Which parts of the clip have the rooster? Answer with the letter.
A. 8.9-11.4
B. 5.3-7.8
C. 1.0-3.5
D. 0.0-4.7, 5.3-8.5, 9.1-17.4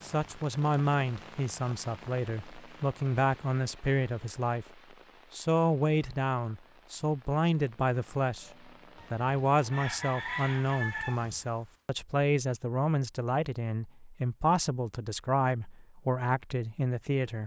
A.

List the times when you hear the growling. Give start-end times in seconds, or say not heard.
not heard.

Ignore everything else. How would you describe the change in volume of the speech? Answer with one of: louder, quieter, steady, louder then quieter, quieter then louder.
steady.